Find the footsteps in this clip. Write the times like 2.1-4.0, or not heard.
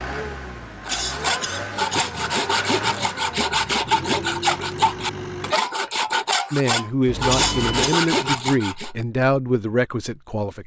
not heard.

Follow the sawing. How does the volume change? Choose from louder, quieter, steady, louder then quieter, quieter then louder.
steady.